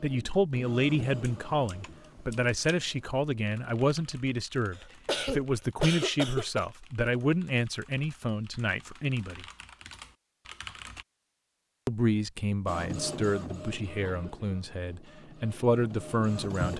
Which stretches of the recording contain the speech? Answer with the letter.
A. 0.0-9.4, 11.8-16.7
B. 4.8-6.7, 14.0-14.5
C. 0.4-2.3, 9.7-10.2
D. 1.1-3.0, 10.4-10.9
A.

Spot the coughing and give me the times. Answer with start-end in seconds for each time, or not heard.
4.8-6.7, 14.0-14.5.